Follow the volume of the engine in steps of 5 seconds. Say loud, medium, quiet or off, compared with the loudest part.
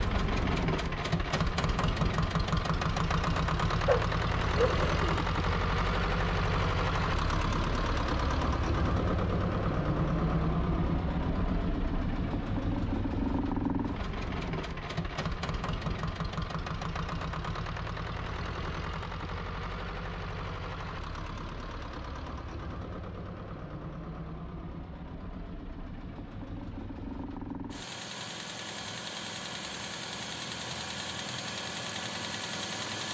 loud, loud, loud, medium, medium, medium, medium.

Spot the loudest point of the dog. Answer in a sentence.
The volume of the dog peaks at 4 seconds.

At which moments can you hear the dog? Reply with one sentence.
The dog can be heard from 3.9 to 5.2 s.